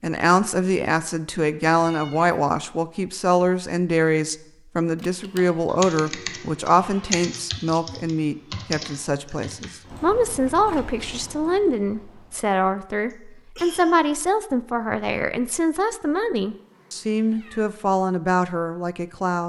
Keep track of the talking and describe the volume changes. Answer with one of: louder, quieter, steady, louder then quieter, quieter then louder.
steady.